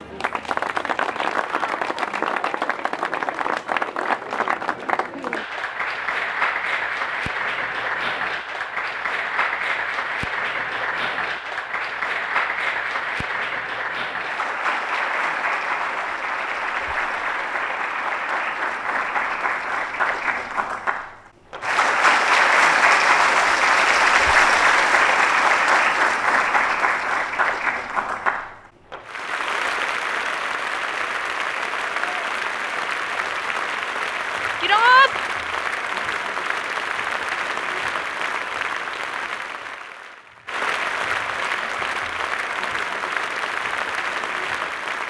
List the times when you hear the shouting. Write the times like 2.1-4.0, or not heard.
34.6-35.1.